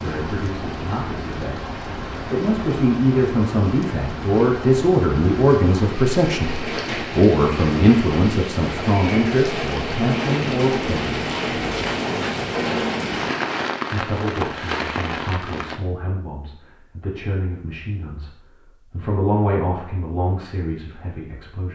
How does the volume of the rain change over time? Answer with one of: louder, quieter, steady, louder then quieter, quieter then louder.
louder.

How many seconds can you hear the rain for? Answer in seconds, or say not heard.
16 s.